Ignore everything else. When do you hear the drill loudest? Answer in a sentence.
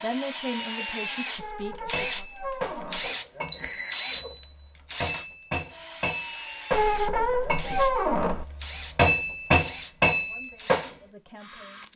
The loudest moment of the drill is at 1 second.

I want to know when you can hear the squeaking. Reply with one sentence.
You can hear the squeaking from 1.4 to 3.1 s and from 6.7 to 8.4 s.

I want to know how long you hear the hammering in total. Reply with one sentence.
You can hear the hammering for 9 seconds altogether.